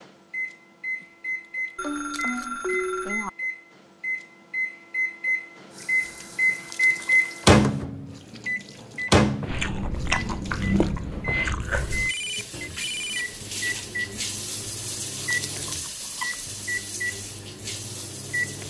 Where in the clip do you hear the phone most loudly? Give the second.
3 s.